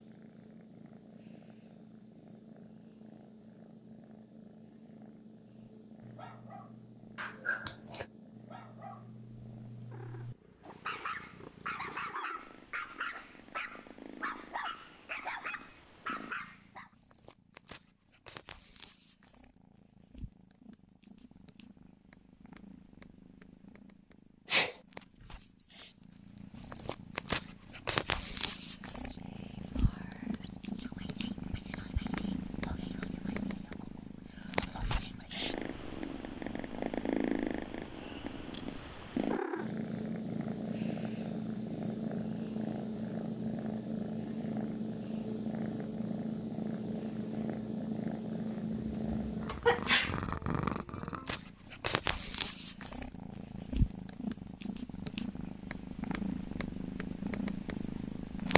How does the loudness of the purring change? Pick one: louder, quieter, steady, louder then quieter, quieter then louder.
louder.